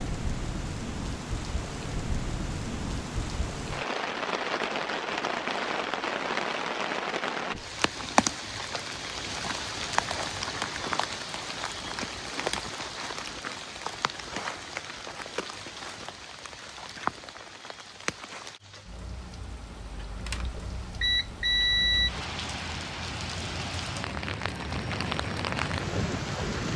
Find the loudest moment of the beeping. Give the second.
22 s.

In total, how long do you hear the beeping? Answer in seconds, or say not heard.
2 s.